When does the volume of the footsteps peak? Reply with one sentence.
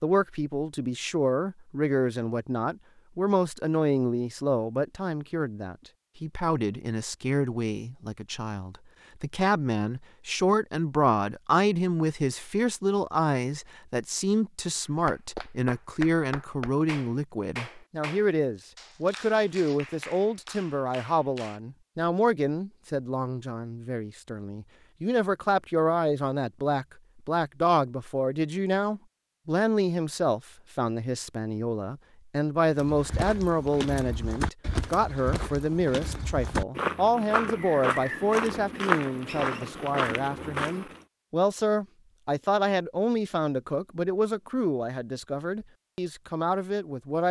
The loudest moment of the footsteps is at 39 seconds.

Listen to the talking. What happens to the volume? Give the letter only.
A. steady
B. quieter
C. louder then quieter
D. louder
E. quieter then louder
A.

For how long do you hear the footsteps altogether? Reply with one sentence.
You can hear the footsteps for 8 seconds altogether.